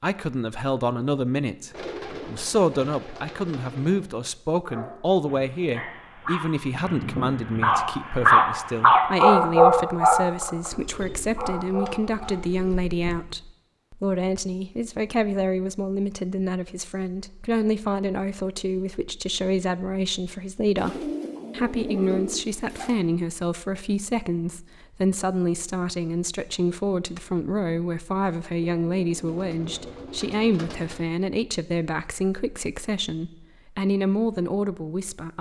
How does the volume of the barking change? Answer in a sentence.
The loudness of the barking goes up, then down.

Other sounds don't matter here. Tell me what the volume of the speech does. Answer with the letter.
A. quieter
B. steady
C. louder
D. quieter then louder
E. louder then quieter
B.